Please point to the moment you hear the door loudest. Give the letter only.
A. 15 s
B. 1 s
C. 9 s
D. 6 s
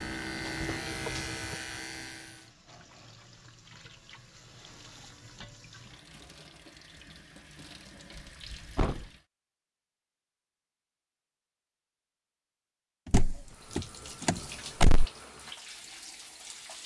A.